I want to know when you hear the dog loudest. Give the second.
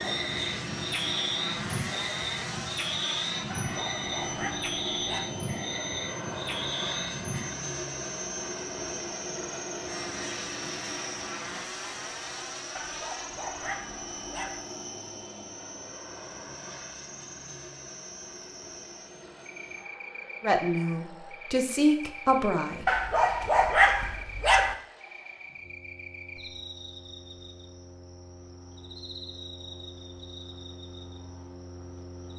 24 s.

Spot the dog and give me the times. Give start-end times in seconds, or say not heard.
3.5-5.2, 12.8-14.7, 22.9-24.8.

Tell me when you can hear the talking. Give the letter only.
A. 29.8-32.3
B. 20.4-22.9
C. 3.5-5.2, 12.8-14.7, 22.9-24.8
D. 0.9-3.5
B.